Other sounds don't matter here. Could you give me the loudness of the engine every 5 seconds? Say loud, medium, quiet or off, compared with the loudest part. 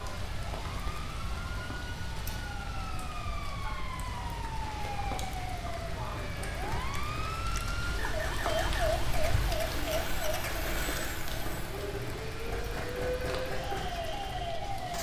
off, loud, loud.